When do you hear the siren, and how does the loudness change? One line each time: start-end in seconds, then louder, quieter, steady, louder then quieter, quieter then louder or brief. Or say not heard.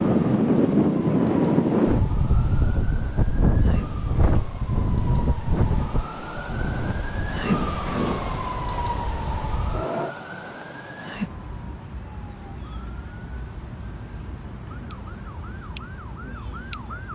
0.0-17.1 louder then quieter.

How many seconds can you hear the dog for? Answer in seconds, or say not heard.
not heard.